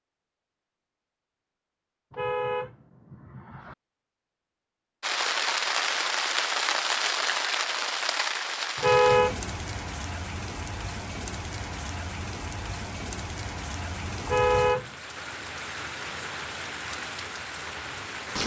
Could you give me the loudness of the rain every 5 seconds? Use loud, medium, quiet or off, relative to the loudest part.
off, loud, medium, medium.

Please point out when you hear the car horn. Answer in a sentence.
The car horn can be heard from 2.1 to 3.8 s, from 8.8 to 9.3 s and from 14.2 to 14.9 s.